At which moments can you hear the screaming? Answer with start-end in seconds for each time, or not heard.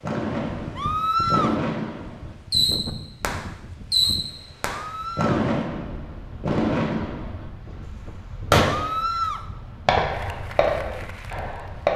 0.8-1.6, 4.8-5.4, 8.7-9.4.